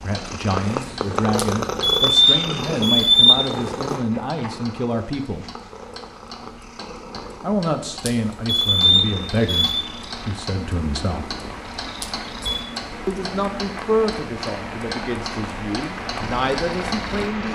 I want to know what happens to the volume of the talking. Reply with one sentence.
The volume of the talking stays about the same.